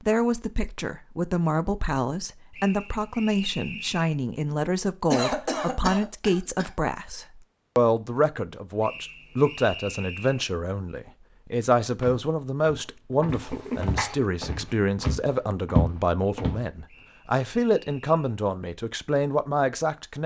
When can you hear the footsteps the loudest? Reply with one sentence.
The volume of the footsteps peaks at 16 seconds.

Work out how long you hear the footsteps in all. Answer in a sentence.
You can hear the footsteps for 5 seconds altogether.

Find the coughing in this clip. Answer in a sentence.
The coughing can be heard from 5.1 to 6.7 s and from 13.3 to 14.2 s.